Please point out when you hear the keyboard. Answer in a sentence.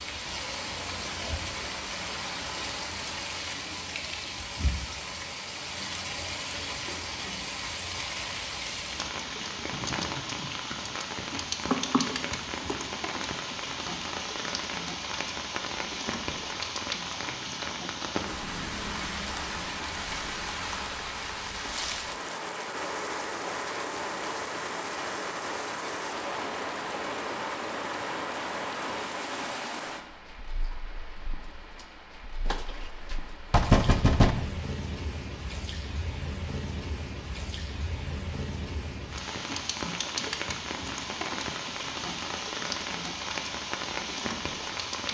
The keyboard can't be heard in this clip.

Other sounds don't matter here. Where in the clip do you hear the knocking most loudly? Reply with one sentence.
The volume of the knocking peaks at 34 seconds.